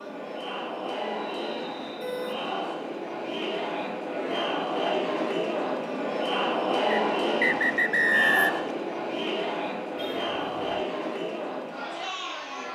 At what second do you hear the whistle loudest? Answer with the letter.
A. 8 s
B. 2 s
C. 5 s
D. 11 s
A.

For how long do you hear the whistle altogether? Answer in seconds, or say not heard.
3 s.